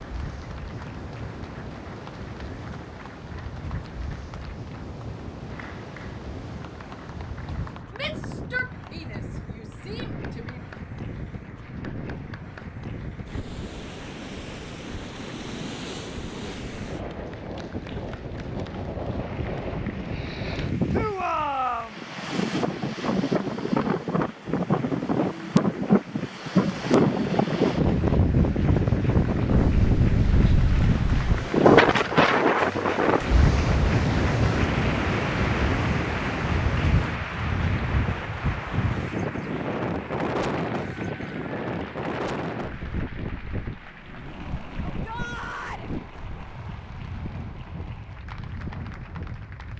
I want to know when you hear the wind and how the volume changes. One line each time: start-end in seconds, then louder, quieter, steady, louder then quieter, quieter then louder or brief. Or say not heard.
0.0-49.7 louder then quieter.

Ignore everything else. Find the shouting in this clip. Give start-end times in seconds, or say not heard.
8.0-10.6, 20.9-21.9, 44.9-45.9.